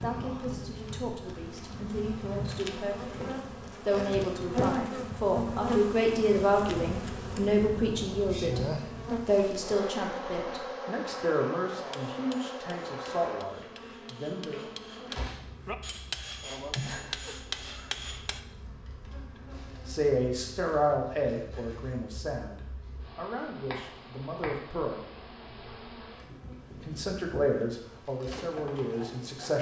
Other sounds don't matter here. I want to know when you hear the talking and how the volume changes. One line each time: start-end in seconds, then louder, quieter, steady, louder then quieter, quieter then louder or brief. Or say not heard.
0.0-14.7 louder then quieter
19.4-25.1 quieter
26.9-29.5 brief.